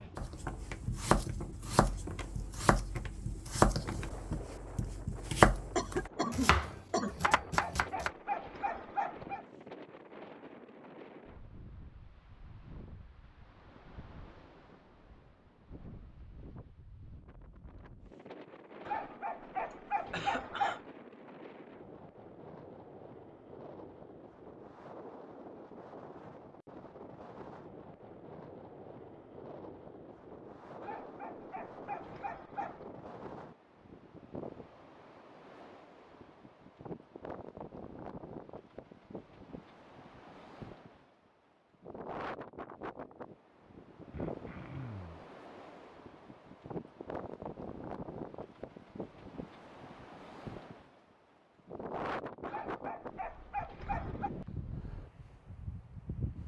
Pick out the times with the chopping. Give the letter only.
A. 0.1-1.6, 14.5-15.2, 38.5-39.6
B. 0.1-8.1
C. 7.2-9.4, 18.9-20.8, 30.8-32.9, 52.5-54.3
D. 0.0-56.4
B.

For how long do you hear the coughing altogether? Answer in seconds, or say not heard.
3 s.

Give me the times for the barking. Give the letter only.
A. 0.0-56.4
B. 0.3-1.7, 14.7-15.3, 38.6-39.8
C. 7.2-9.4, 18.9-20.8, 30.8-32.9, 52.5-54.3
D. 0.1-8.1
C.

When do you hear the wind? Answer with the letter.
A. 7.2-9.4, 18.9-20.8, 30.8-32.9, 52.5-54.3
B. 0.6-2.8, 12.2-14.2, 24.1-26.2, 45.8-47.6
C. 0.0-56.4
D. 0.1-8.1
C.